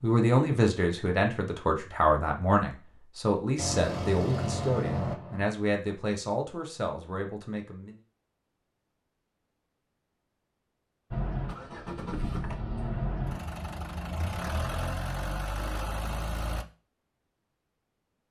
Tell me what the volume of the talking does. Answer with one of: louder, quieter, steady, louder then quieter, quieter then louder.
quieter.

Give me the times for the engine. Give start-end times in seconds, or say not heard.
3.5-5.5, 11.1-16.6.